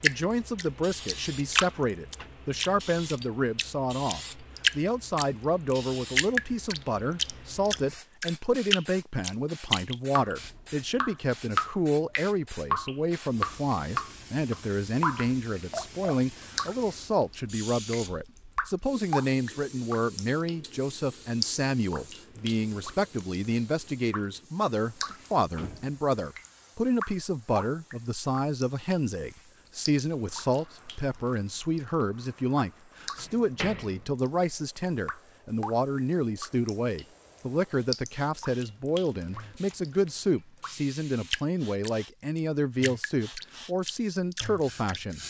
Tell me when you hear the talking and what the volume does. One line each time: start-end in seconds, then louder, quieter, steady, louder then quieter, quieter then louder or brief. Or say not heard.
0.0-45.2 steady.